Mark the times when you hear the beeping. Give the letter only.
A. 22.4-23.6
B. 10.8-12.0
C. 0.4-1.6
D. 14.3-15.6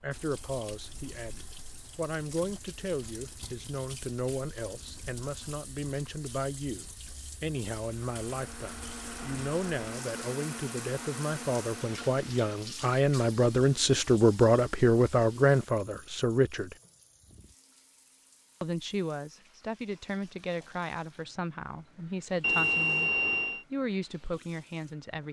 A.